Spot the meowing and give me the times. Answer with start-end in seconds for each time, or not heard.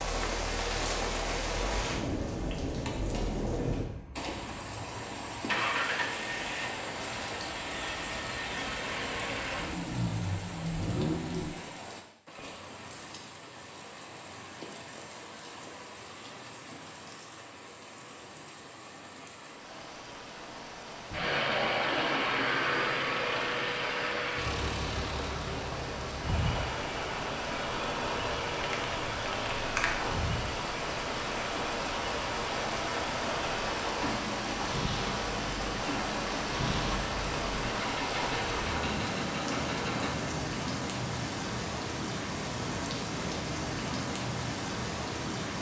not heard.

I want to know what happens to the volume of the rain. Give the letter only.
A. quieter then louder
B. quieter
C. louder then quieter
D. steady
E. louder
A.